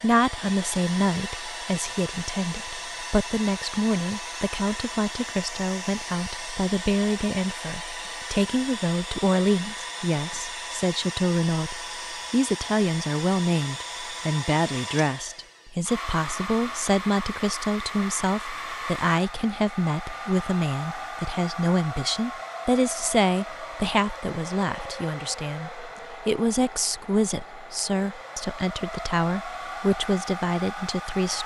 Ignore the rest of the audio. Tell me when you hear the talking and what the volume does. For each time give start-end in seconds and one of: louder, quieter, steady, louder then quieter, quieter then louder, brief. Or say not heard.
0.0-31.4 steady.